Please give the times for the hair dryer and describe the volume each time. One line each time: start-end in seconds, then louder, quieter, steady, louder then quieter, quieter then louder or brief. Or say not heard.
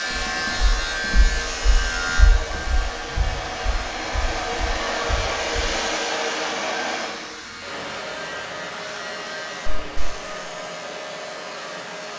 0.0-12.1 louder then quieter.